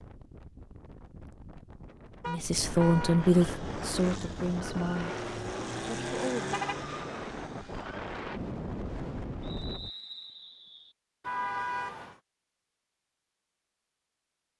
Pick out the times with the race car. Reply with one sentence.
You can hear the race car from 3.1 to 8.2 s.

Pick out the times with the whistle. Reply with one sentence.
You can hear the whistle from 9.4 to 10.9 s.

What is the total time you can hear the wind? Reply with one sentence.
You can hear the wind for 10 seconds altogether.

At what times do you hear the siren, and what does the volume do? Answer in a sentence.
You can't hear the siren here.